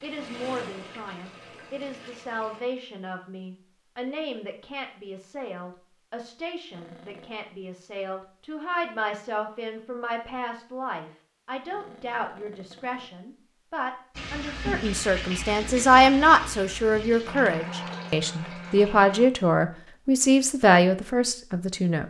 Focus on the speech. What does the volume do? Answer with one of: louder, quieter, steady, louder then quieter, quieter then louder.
louder.